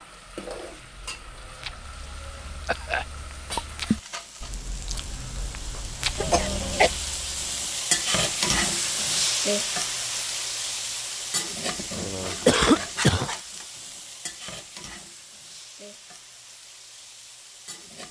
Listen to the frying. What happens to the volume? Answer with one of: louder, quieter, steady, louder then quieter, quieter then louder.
louder then quieter.